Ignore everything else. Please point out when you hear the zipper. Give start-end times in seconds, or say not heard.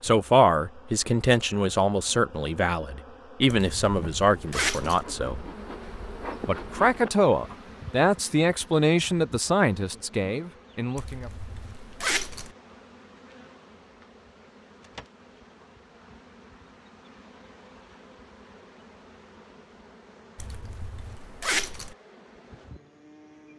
3.5-5.0, 10.9-12.5, 20.4-21.9.